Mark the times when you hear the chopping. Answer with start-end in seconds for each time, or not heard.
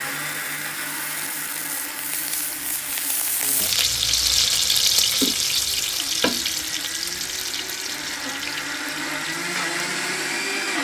not heard.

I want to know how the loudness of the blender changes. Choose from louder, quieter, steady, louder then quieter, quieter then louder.
quieter then louder.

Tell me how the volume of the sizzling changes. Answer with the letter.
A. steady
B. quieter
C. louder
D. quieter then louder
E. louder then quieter
E.